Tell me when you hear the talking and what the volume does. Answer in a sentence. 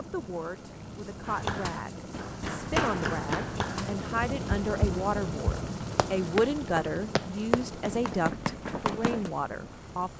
You can hear the talking from 0.0 to 10.1 s, getting louder.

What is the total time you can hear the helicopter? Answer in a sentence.
The helicopter can be heard for 10 seconds in total.